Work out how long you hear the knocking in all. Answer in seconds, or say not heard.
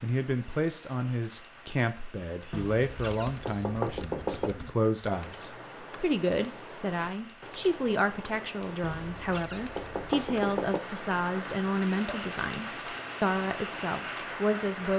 4 s.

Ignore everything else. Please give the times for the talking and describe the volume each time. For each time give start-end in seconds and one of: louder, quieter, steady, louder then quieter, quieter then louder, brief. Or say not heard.
0.0-14.9 steady.